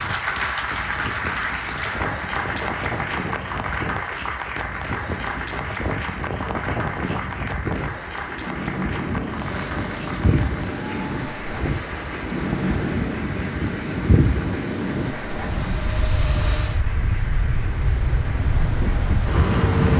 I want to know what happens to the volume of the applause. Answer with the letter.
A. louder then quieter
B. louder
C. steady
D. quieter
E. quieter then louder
D.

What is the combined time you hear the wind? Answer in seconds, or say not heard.
20 s.